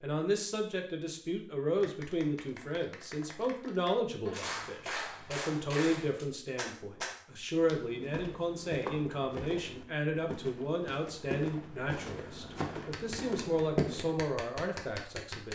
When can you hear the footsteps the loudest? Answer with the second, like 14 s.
14 s.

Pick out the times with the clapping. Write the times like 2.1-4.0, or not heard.
1.8-7.2, 12.9-15.5.